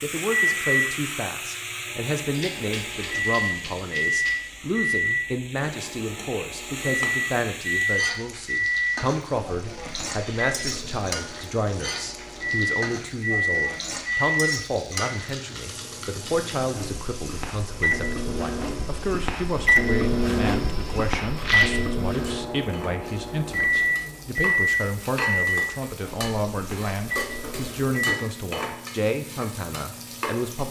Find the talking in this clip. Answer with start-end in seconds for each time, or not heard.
0.0-30.6.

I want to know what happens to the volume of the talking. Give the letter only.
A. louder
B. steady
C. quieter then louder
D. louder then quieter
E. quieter
B.